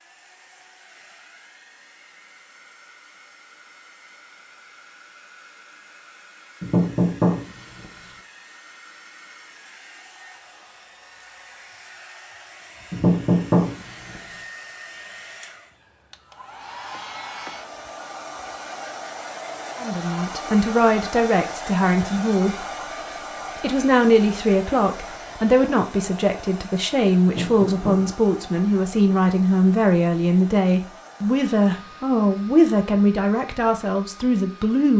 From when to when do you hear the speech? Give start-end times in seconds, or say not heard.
19.8-22.6, 23.6-34.9.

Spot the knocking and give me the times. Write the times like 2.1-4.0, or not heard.
6.6-7.8, 12.9-14.2, 27.2-28.5.